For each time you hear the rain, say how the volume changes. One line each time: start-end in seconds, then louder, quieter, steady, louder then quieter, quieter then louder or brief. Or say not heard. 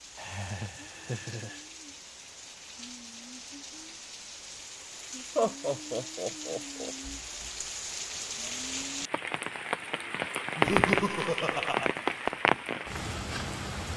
0.0-13.9 louder.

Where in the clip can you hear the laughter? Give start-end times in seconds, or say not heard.
0.1-1.6, 5.3-7.0, 10.6-11.9.